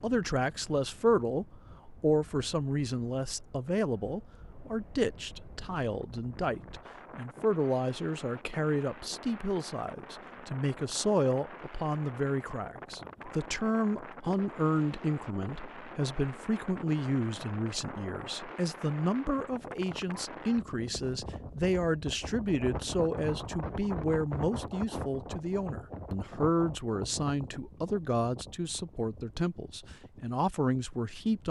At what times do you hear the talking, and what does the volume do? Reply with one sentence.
The talking can be heard from 0.0 to 31.4 s, at a steady volume.